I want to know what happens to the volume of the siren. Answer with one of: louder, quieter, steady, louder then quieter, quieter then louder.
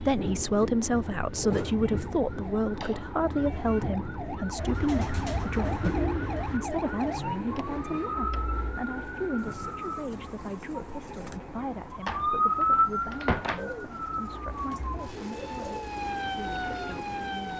louder then quieter.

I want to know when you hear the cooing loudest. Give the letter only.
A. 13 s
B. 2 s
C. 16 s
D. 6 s
D.